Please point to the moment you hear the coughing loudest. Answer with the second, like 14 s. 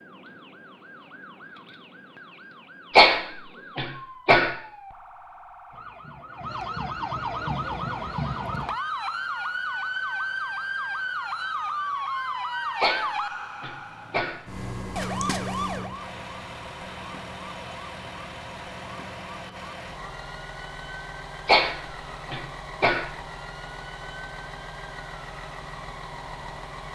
3 s.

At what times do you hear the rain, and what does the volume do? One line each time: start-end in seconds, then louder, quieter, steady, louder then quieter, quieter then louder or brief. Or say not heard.
not heard.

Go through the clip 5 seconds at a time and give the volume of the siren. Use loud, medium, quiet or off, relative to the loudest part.
quiet, loud, loud, medium, quiet, quiet.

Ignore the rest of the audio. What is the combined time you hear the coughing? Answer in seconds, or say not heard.
5 s.